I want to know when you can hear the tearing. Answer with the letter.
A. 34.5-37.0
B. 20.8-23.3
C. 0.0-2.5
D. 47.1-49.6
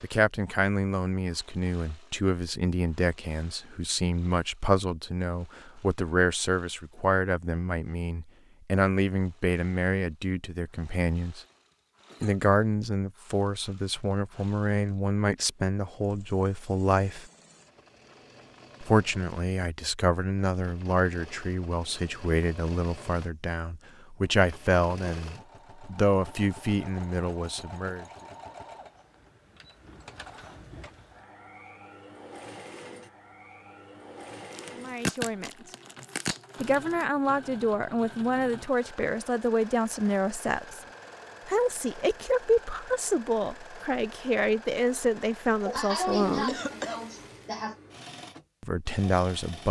A.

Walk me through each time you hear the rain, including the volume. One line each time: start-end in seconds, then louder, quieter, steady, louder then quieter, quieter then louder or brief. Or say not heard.
not heard.